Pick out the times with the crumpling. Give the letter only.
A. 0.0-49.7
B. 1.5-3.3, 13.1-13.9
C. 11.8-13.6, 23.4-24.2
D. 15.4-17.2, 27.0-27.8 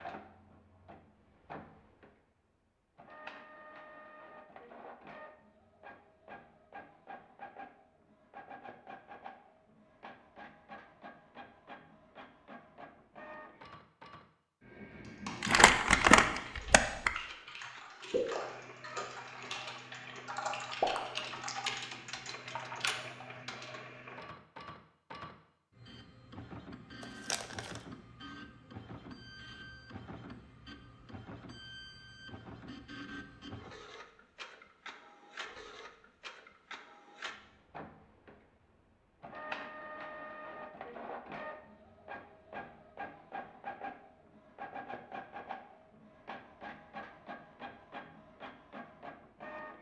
D.